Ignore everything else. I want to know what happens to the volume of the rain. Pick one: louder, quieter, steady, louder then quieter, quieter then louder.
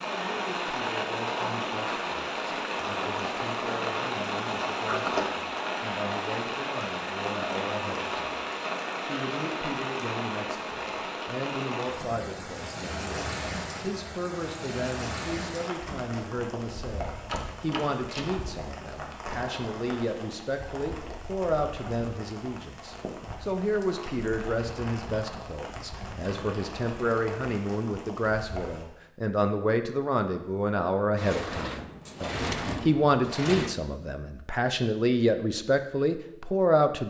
quieter.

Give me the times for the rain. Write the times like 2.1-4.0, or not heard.
0.0-28.9.